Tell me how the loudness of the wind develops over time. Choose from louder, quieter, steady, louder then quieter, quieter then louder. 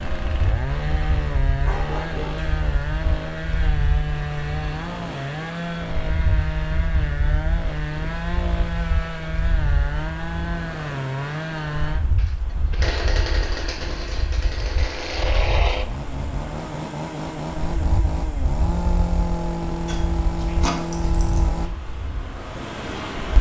steady.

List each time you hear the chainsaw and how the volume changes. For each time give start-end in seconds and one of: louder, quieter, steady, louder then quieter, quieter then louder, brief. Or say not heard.
0.0-21.7 steady.